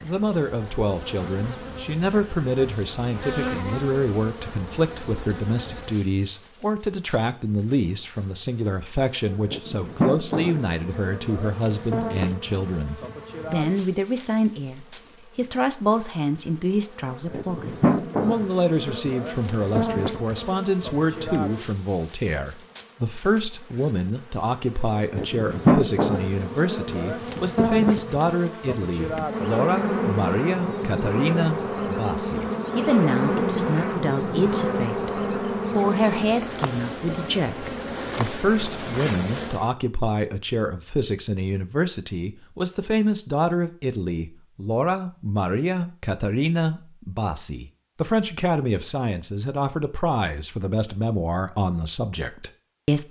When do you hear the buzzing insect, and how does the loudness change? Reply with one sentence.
You can hear the buzzing insect from 0.0 to 39.6 s, getting louder.